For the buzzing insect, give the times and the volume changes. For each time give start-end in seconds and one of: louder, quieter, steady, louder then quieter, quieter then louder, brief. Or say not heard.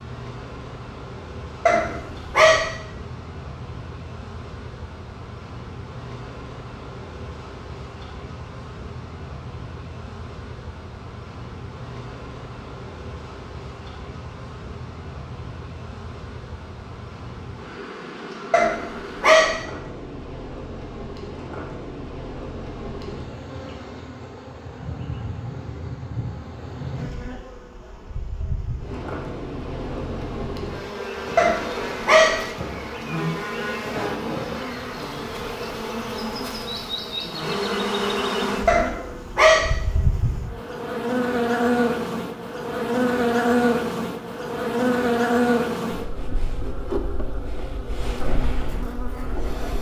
0.0-49.7 louder.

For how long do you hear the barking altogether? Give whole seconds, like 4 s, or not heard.
4 s.